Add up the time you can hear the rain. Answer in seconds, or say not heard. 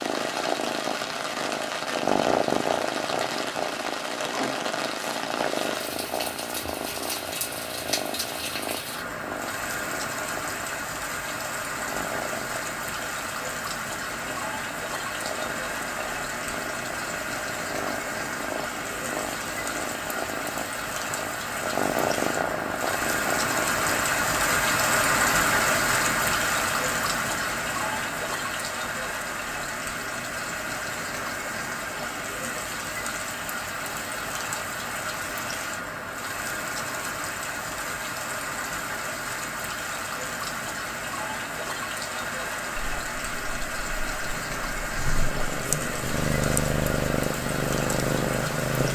49 s.